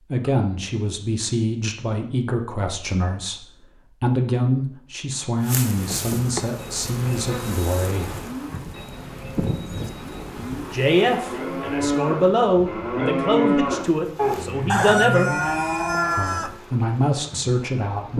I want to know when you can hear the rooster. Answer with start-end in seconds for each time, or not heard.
14.7-16.6.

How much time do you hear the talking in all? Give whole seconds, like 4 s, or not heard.
15 s.